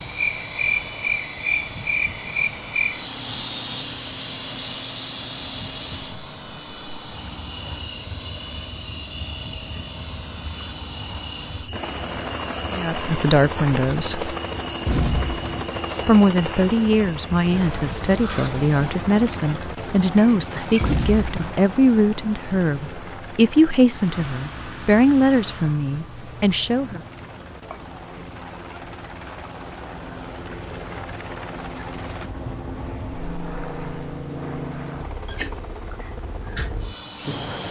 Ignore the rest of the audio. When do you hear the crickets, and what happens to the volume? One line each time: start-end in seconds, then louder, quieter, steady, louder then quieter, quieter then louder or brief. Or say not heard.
0.0-37.6 quieter then louder.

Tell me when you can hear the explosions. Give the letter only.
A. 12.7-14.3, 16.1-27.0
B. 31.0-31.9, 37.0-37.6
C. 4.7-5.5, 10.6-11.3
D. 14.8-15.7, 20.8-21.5
D.